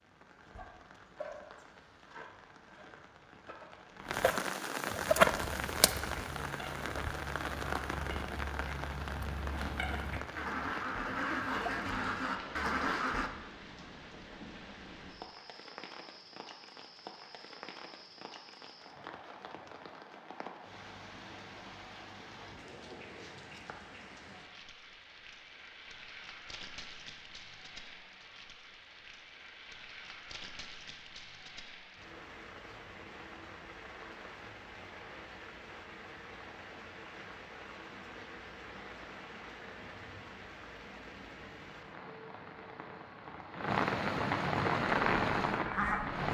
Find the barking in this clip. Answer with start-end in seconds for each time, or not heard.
not heard.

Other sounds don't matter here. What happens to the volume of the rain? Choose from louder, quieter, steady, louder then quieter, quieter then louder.
quieter then louder.